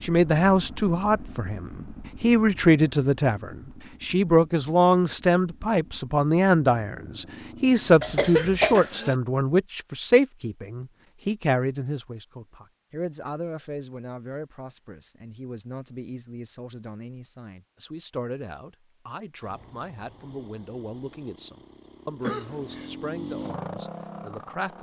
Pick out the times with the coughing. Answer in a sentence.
You can hear the coughing from 8.0 to 9.2 s and from 22.2 to 22.9 s.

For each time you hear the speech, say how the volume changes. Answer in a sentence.
You can hear the speech from 0.0 to 24.7 s, getting quieter.